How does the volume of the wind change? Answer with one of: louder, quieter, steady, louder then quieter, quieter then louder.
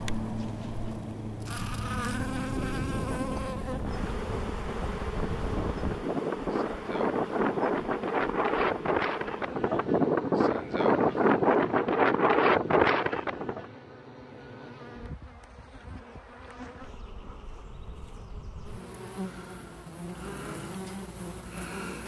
louder.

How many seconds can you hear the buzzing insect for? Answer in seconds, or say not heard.
22 s.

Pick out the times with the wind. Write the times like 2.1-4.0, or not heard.
0.2-13.7.